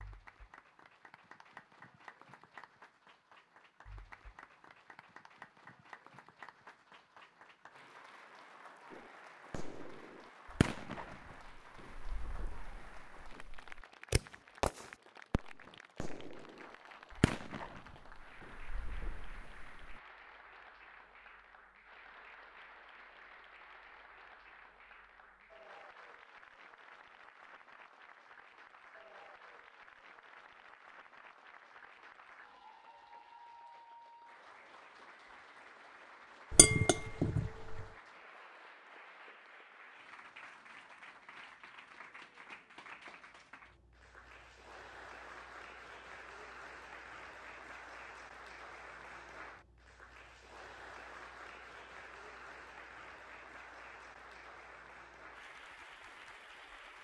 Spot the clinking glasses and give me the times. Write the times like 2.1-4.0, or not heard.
36.5-37.9.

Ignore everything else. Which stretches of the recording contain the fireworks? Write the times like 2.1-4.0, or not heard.
8.9-20.0.